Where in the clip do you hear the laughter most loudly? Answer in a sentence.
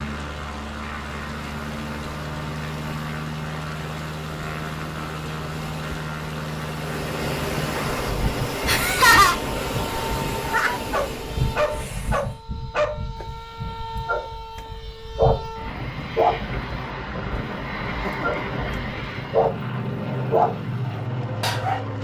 The loudest moment of the laughter is at 9 seconds.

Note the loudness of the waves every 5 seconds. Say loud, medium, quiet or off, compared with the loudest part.
medium, loud, loud, off, off.